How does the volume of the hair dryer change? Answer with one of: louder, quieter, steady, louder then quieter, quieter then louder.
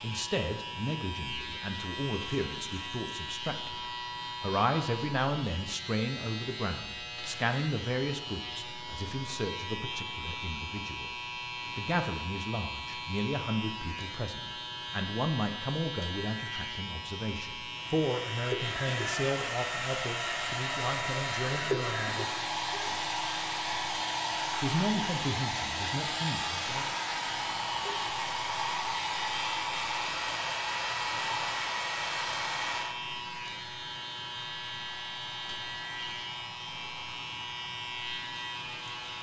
quieter.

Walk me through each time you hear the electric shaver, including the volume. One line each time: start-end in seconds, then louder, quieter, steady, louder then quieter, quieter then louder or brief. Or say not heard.
0.0-39.1 steady.